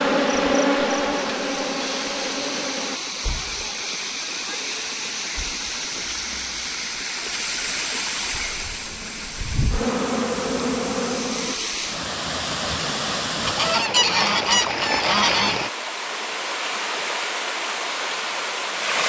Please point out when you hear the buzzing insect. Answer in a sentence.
The buzzing insect can be heard from 0.0 to 3.0 s and from 8.3 to 11.6 s.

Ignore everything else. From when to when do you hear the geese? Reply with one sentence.
You can hear the geese from 13.4 to 15.7 s.